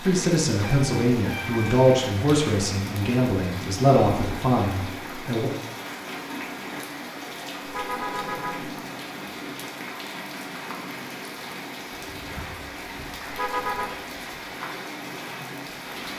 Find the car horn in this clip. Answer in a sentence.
You can hear the car horn from 0.6 to 2.0 s, from 7.7 to 8.8 s and from 13.3 to 14.0 s.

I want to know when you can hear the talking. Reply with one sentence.
The talking can be heard from 0.0 to 5.5 s.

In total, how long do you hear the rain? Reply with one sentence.
The rain can be heard for 16 seconds in total.